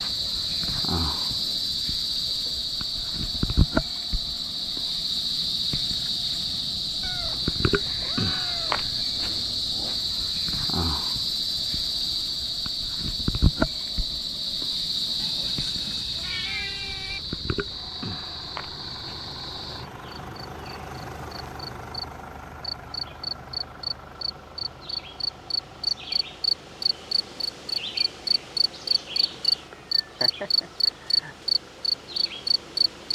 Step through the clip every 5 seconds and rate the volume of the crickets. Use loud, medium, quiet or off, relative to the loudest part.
loud, loud, loud, medium, medium, loud, loud.